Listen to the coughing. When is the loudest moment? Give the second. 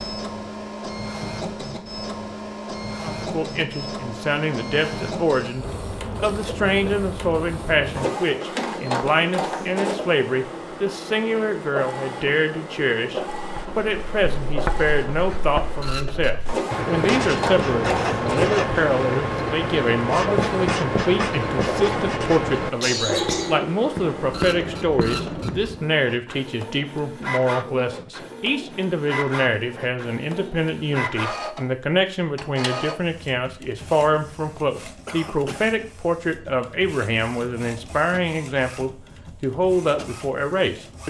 23 s.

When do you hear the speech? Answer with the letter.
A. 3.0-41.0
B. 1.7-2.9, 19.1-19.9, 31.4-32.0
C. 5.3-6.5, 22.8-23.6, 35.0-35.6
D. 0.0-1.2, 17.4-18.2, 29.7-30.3
A.